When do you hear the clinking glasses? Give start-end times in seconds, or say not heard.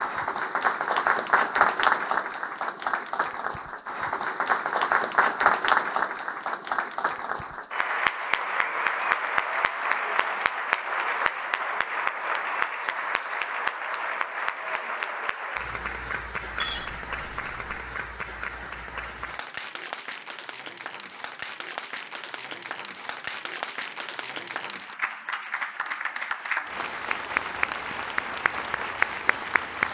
16.6-17.8.